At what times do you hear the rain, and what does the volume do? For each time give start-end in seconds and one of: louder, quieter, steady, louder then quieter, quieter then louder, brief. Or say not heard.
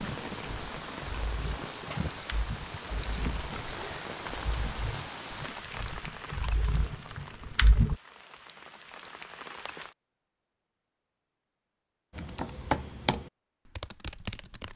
0.0-9.9 quieter.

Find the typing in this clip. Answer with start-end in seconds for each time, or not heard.
0.0-8.0, 12.1-14.7.